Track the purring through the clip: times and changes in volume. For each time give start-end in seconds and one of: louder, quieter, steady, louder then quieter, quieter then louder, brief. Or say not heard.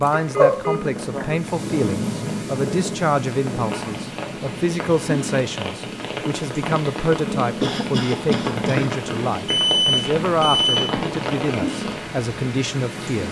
0.0-13.2 quieter.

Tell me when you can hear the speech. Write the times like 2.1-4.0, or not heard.
0.0-13.2.